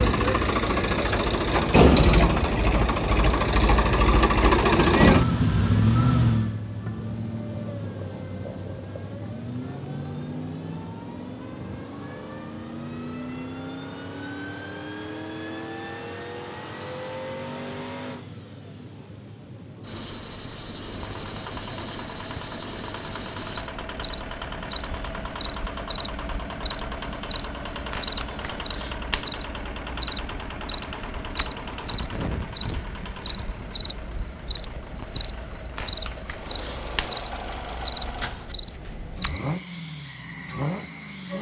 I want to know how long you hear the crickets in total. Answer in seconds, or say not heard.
41 s.